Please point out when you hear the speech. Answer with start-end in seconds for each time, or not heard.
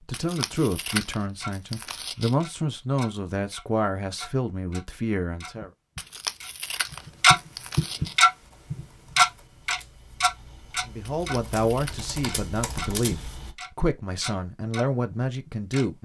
0.1-5.7, 10.8-16.0.